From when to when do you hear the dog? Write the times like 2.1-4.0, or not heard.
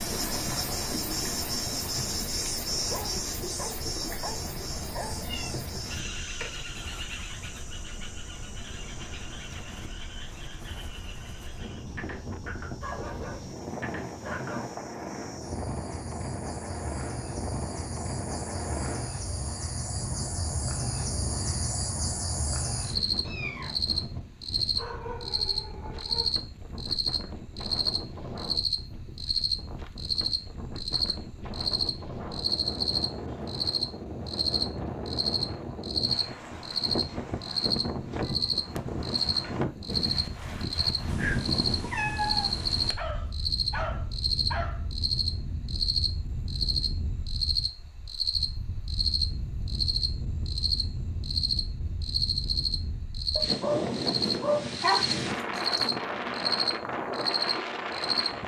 2.9-5.2, 12.8-14.8, 24.8-26.4, 43.0-44.9, 53.4-55.9.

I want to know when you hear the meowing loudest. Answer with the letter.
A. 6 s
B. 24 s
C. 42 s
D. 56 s
C.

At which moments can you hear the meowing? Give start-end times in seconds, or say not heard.
4.2-6.2, 23.2-23.9, 41.0-43.0.